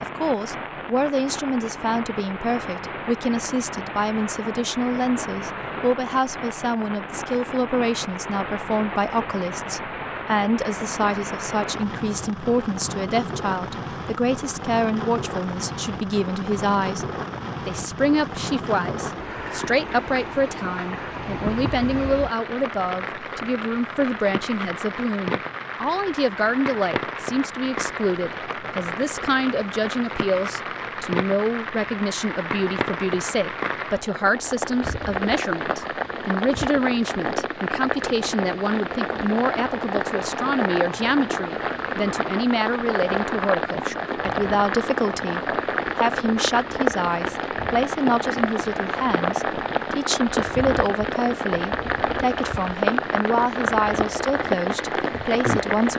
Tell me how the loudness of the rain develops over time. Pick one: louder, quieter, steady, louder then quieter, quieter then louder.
louder.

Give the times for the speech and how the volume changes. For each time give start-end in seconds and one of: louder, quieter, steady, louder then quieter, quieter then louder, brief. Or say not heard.
0.0-17.1 steady
17.6-55.9 steady.